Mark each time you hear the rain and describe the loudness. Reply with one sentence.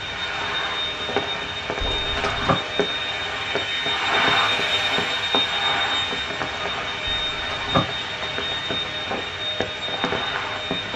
The rain can be heard from 0.0 to 10.9 s, at a steady volume.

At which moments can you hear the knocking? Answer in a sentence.
The knocking can be heard from 1.8 to 2.5 s and from 7.0 to 7.8 s.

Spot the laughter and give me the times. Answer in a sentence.
The laughter can't be heard in this clip.